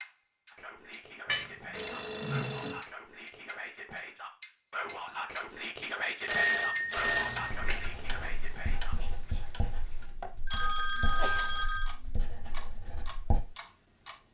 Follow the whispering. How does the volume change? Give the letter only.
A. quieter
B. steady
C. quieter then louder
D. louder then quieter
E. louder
D.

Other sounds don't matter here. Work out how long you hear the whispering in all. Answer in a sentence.
You can hear the whispering for 9 seconds altogether.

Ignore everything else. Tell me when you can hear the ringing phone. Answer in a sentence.
The ringing phone can be heard from 1.2 to 2.8 s, from 6.2 to 7.8 s and from 10.4 to 11.9 s.